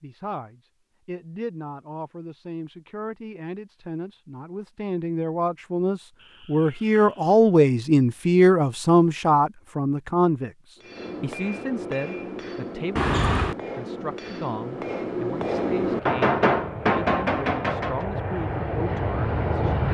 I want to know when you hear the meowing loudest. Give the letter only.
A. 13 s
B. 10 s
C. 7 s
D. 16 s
A.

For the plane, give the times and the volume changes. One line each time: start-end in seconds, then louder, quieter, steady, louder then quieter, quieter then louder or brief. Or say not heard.
15.4-19.8 louder.